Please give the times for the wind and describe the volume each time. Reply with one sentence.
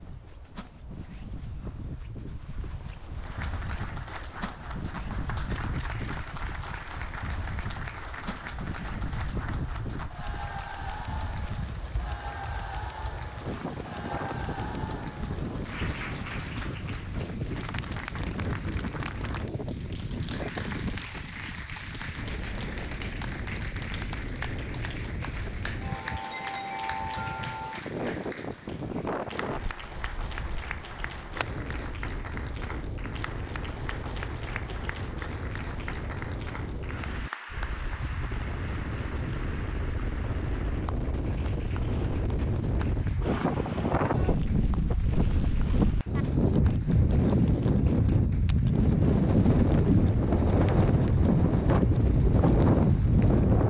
The wind can be heard from 0.0 to 53.6 s, getting louder.